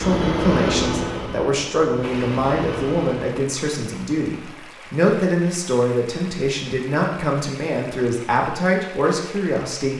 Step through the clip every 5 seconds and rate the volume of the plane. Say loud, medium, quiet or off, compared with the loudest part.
loud, off.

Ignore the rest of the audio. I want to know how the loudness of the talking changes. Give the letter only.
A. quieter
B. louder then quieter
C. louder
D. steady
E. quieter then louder
D.